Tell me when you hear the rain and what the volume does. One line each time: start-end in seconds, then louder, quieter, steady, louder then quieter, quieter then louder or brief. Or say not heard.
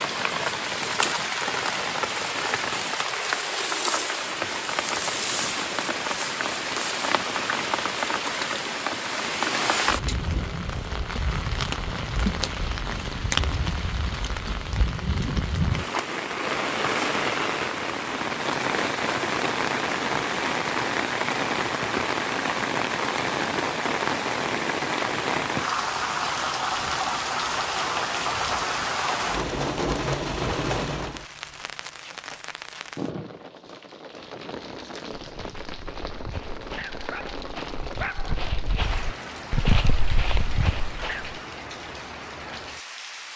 0.0-43.3 quieter.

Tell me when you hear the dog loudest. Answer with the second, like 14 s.
40 s.